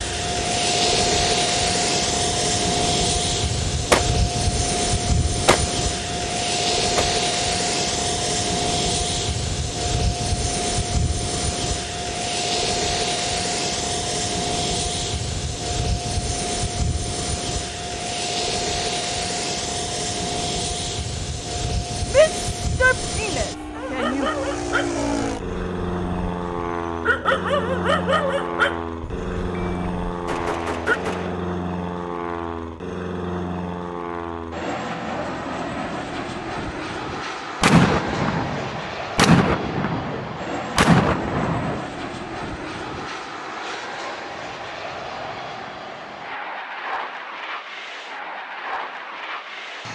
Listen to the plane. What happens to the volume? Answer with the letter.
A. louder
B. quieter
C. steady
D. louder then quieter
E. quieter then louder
B.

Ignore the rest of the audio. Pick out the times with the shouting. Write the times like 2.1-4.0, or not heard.
22.1-24.3.